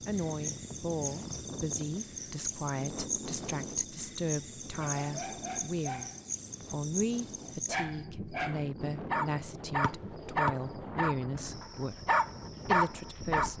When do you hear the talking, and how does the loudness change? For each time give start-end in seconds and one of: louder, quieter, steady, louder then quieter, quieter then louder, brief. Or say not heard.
0.1-13.5 steady.